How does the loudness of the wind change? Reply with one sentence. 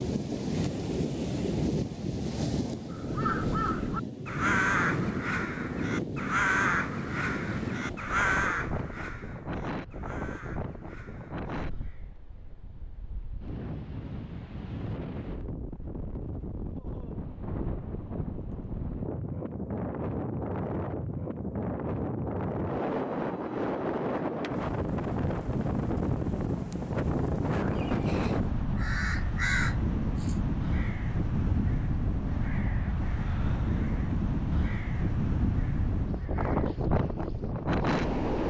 The loudness of the wind goes down, then up.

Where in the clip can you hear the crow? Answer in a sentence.
The crow can be heard from 2.9 to 12.2 s and from 27.6 to 36.8 s.